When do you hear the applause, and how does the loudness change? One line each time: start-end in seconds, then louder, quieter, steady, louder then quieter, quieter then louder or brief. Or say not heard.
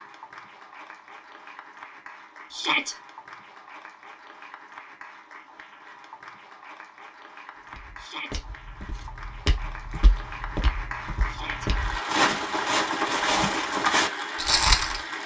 0.0-15.2 louder.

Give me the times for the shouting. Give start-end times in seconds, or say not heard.
2.5-3.0, 8.0-8.4, 11.2-11.7.